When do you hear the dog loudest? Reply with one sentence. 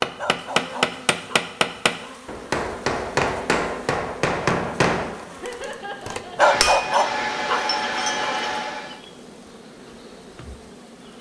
The loudest moment of the dog is at 7 seconds.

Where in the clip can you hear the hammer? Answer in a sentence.
The hammer can be heard from 0.0 to 8.9 s.